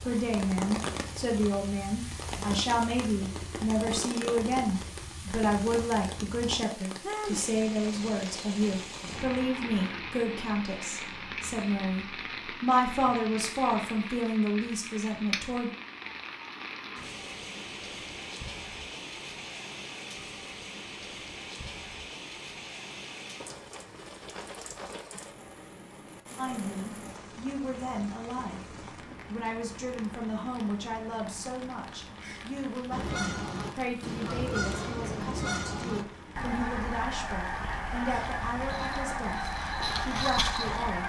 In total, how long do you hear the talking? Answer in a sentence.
The talking can be heard for 30 seconds in total.